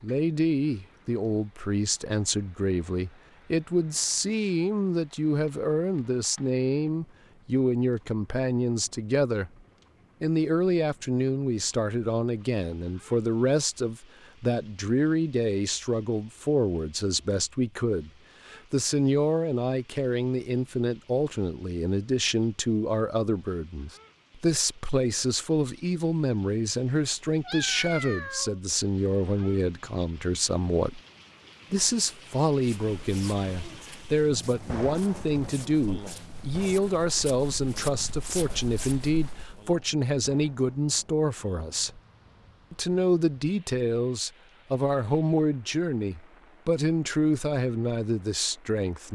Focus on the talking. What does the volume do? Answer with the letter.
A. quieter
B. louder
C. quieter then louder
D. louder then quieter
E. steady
E.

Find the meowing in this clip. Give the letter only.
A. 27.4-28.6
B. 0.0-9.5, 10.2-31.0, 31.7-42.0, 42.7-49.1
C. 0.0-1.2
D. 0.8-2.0
A.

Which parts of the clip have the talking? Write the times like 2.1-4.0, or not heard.
0.0-9.5, 10.2-31.0, 31.7-42.0, 42.7-49.1.